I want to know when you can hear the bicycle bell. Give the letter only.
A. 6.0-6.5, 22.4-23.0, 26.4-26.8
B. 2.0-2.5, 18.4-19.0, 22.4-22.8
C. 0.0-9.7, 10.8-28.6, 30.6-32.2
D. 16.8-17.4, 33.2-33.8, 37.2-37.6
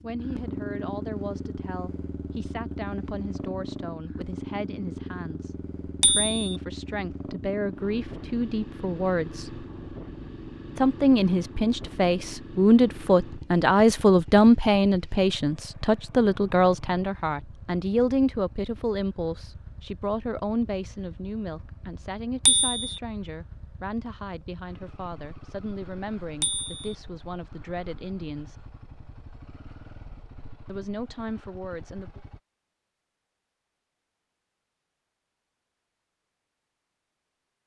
A.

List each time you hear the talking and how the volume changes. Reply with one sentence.
The talking can be heard from 0.0 to 9.7 s, getting louder; from 10.8 to 28.6 s, getting quieter; and briefly from 30.6 to 32.2 s.